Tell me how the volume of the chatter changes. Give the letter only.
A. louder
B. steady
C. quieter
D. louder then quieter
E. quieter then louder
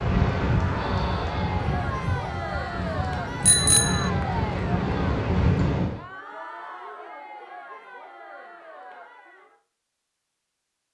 C.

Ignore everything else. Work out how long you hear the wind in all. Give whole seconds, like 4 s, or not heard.
6 s.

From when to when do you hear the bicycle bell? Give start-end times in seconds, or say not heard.
3.5-4.1.